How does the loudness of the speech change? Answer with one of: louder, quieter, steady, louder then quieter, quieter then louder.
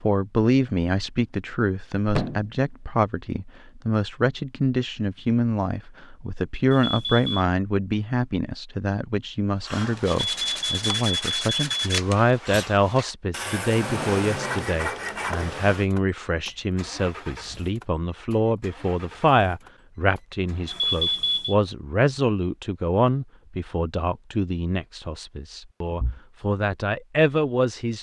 steady.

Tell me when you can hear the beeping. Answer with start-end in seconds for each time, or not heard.
6.7-7.5, 10.1-12.0, 20.6-21.6.